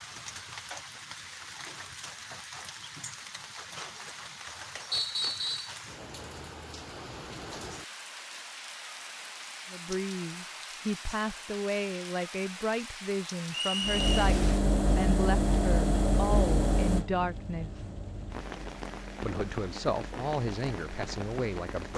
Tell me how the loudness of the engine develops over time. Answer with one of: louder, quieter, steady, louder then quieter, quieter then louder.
quieter.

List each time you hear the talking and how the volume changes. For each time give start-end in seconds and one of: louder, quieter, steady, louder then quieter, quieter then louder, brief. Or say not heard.
9.7-17.9 steady
19.2-21.9 brief.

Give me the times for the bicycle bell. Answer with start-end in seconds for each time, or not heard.
not heard.